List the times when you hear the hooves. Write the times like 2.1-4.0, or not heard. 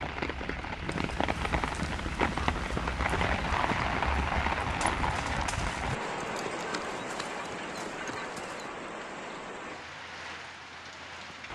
0.8-8.7.